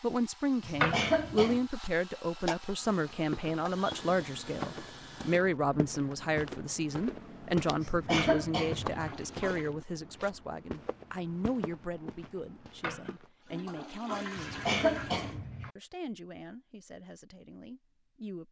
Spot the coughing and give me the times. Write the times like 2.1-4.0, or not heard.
0.6-1.6, 7.8-9.2, 14.3-15.7.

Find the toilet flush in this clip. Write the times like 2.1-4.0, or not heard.
0.8-1.6, 8.2-9.7, 12.8-15.3.